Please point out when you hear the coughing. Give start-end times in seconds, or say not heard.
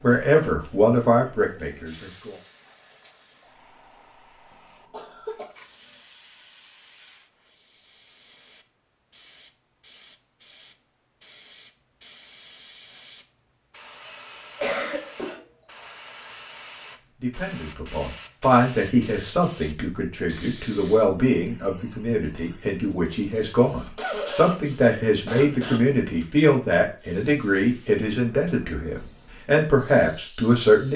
4.9-5.5, 14.0-15.8, 23.2-25.9.